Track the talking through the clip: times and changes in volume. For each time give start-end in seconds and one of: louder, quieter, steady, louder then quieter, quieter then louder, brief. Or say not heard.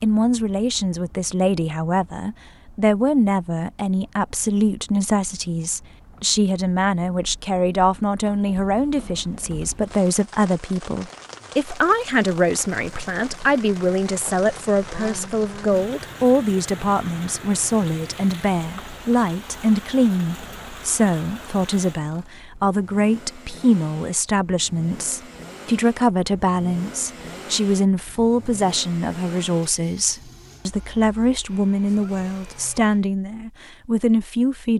0.0-34.7 steady.